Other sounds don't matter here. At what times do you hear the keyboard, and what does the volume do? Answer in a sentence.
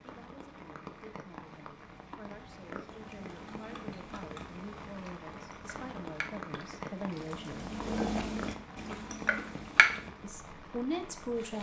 The keyboard can't be heard in this clip.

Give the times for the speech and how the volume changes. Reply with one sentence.
You can hear the speech from 0.0 to 7.8 s, getting louder; and briefly from 10.2 to 11.5 s.